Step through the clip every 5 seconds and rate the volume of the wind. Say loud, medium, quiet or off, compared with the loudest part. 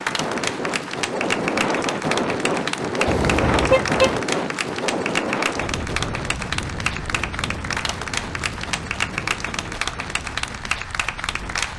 loud, medium, quiet.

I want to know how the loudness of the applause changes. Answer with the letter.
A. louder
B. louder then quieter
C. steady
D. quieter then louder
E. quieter
C.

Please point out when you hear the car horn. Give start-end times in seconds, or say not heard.
3.0-4.2.